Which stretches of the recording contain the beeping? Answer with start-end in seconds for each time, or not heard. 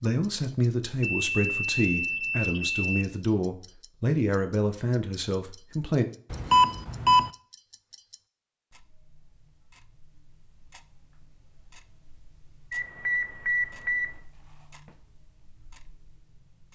1.0-3.0, 6.3-7.3, 12.7-14.2.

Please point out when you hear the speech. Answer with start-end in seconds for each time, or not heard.
0.0-6.0.